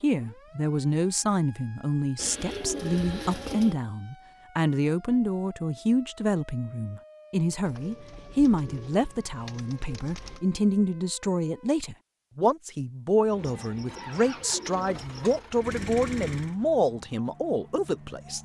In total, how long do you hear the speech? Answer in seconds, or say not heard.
18 s.